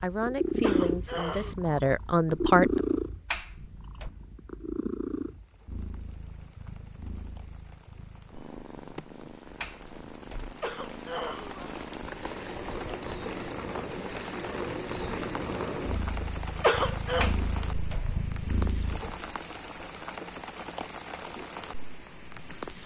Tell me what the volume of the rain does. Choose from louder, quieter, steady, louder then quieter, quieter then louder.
louder.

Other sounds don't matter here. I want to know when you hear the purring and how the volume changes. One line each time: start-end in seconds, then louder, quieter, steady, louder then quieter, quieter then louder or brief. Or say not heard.
0.0-19.1 quieter then louder.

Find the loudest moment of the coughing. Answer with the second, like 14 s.
17 s.